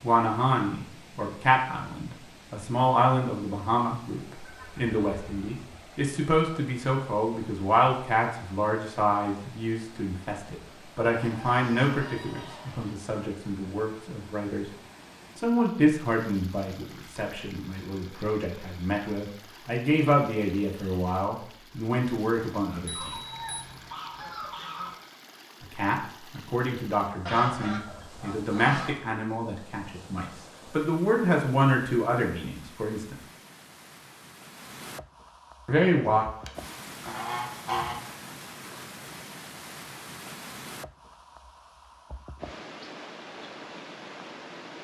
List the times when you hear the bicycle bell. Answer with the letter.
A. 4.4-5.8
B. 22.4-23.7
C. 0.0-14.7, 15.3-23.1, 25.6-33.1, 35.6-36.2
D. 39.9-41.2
B.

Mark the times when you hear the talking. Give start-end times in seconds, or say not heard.
0.0-14.7, 15.3-23.1, 25.6-33.1, 35.6-36.2.